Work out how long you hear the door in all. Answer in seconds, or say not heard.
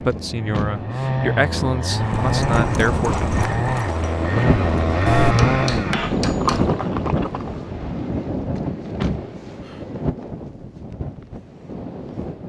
2 s.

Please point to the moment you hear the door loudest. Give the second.
9 s.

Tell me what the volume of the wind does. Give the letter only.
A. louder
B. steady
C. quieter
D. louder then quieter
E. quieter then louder
D.